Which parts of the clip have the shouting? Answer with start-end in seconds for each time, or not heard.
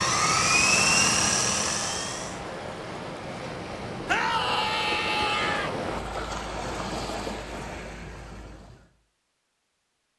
4.0-5.7.